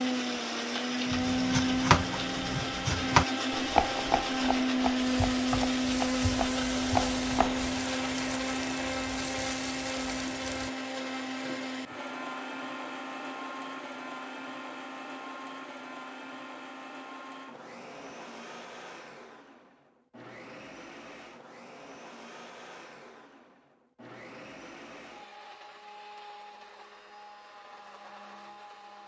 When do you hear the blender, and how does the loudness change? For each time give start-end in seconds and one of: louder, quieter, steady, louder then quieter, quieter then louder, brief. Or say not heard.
0.0-29.0 quieter.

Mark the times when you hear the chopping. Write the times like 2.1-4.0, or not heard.
1.1-7.7.